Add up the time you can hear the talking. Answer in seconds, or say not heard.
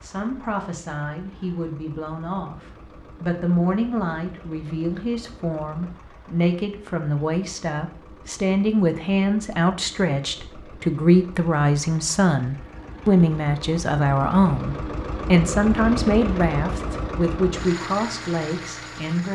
19 s.